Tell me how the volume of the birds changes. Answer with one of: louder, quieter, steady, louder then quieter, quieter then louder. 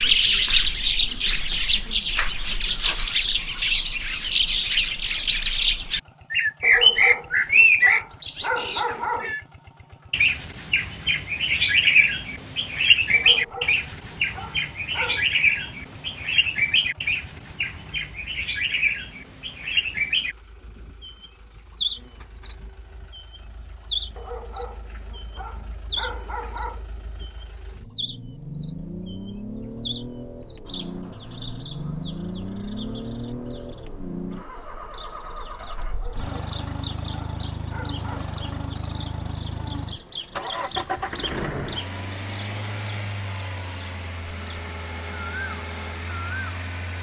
quieter.